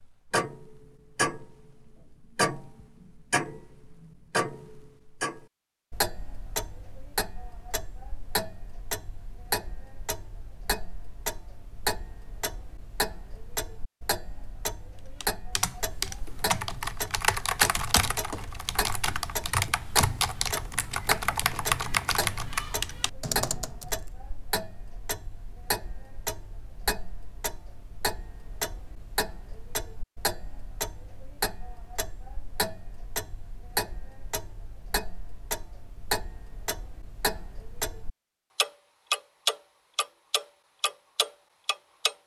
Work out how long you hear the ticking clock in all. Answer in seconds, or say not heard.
42 s.